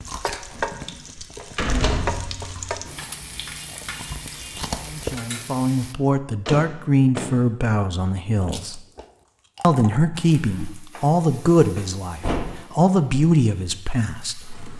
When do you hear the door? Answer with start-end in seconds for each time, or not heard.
0.5-3.0, 6.5-7.3, 11.8-12.7.